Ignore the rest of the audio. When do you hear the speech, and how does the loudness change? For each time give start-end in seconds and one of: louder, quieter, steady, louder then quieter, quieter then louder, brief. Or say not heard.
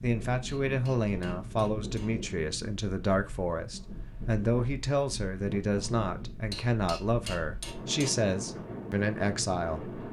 0.0-9.9 steady.